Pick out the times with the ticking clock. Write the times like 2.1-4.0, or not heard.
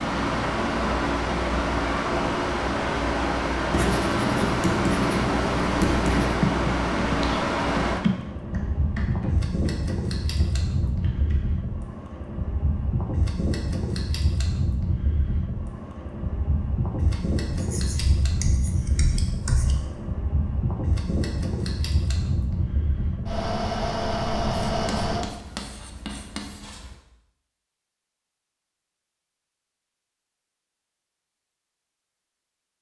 not heard.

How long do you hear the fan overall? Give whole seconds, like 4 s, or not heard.
25 s.